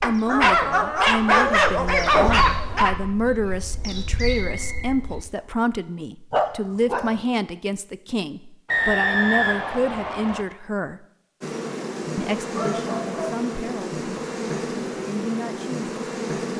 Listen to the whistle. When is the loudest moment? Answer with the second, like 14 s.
9 s.